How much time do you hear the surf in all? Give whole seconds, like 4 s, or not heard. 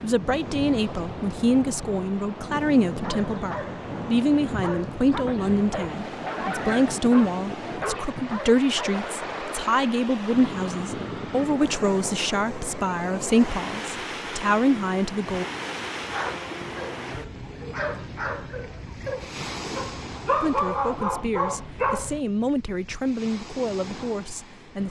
25 s.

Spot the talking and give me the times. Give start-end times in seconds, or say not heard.
0.0-15.4, 20.4-24.8.